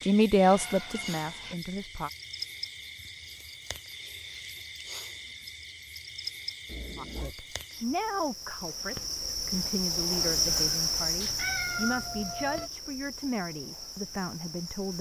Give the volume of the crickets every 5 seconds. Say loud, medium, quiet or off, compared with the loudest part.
medium, medium, loud.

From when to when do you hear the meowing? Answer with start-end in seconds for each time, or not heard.
0.4-1.6, 6.7-7.3, 11.2-12.7.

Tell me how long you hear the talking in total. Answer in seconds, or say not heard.
10 s.